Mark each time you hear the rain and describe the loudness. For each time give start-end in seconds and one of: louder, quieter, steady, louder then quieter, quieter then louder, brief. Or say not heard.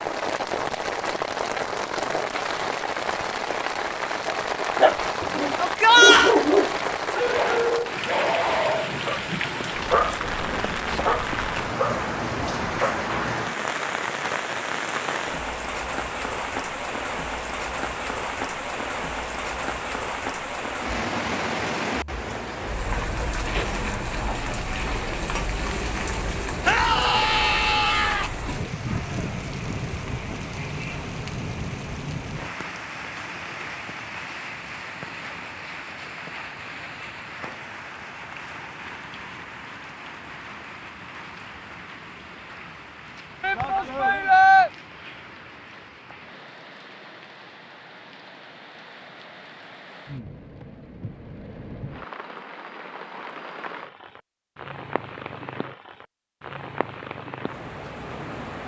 0.0-58.6 quieter.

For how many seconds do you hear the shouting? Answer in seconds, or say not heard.
4 s.